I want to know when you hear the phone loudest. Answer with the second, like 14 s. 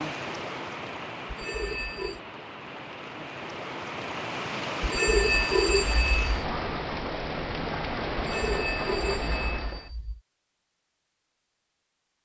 5 s.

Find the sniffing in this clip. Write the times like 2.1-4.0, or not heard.
not heard.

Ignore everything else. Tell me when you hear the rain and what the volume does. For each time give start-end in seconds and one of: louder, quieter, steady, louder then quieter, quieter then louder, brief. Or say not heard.
0.0-9.9 louder.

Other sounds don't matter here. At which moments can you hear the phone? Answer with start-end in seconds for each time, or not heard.
1.2-2.2, 4.8-6.5, 8.2-10.2.